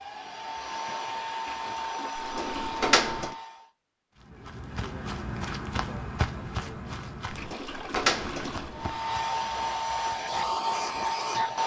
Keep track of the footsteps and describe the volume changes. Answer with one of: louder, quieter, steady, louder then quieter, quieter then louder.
quieter.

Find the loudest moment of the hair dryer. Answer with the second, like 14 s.
11 s.